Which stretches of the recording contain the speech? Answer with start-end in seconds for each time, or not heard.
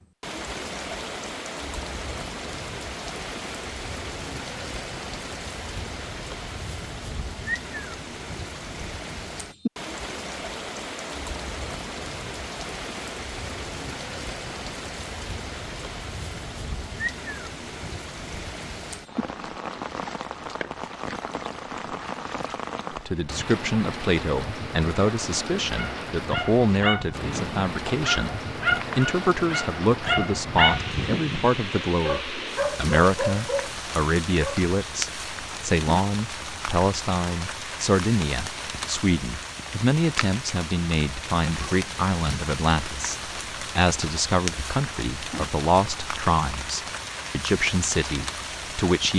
23.1-28.4, 28.9-49.1.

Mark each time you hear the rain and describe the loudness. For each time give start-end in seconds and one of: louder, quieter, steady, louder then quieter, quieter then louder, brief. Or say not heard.
0.0-49.1 steady.